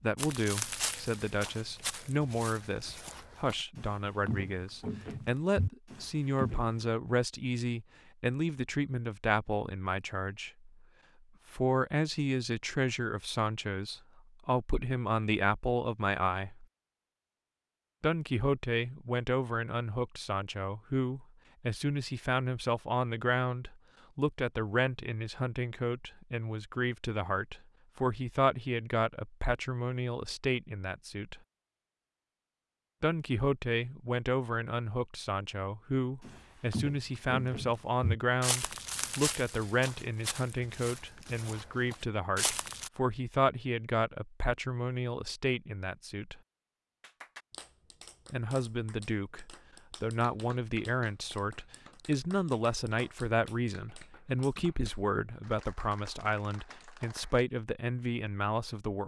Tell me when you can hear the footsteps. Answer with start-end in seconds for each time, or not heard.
0.1-6.7, 36.2-42.9.